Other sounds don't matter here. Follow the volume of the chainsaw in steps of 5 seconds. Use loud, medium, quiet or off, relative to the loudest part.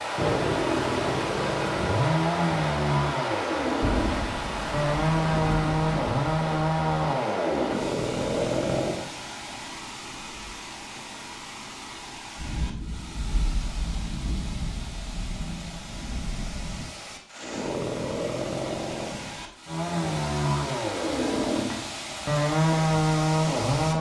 loud, loud, off, medium, loud.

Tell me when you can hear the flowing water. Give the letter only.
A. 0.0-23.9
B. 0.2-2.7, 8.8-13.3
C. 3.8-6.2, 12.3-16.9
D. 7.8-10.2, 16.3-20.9
A.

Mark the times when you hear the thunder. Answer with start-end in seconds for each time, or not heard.
3.8-6.2, 12.3-16.9.